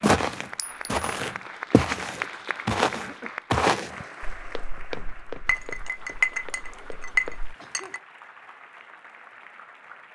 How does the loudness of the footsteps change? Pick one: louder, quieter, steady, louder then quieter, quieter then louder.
louder then quieter.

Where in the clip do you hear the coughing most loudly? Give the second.
3 s.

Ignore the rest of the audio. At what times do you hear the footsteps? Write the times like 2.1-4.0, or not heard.
0.0-7.5.